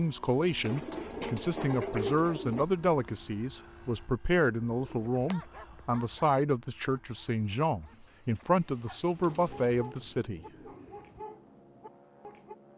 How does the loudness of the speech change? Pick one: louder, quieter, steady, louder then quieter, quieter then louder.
steady.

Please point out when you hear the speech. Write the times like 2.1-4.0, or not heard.
0.0-10.4.